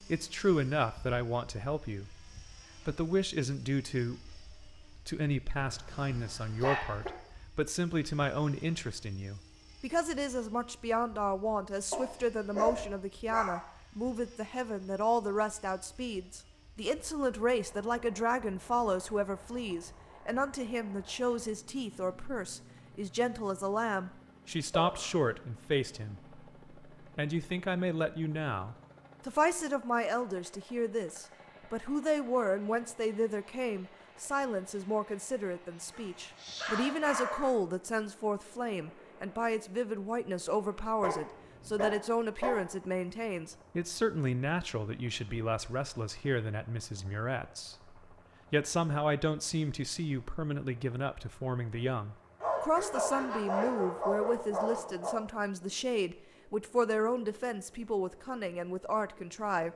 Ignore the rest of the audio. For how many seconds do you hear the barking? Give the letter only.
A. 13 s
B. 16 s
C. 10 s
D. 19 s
C.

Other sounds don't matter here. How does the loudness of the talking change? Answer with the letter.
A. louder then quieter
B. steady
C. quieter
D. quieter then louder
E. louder
B.